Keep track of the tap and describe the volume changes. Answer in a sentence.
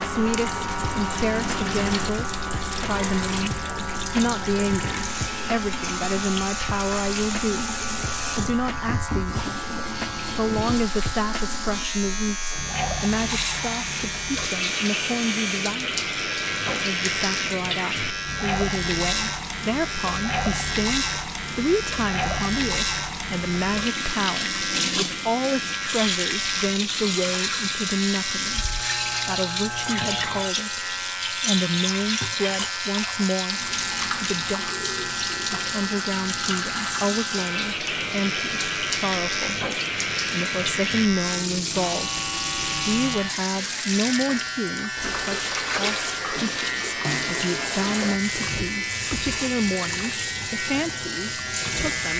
The loudness of the tap stays about the same.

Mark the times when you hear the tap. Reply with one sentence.
You can hear the tap from 0.0 to 52.1 s.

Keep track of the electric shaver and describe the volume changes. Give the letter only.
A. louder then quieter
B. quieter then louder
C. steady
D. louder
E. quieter
C.